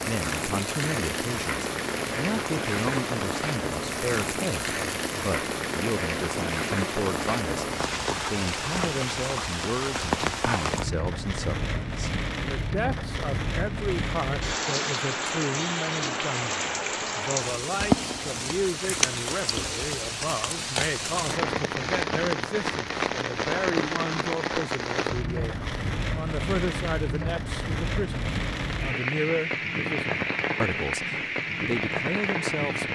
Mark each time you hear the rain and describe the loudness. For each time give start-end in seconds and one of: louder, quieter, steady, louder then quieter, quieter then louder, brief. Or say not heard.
0.0-32.8 steady.